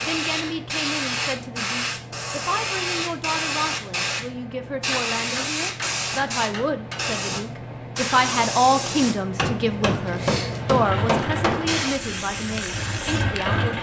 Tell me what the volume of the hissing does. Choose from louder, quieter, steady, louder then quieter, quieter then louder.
steady.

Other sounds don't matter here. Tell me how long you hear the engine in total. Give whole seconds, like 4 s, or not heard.
3 s.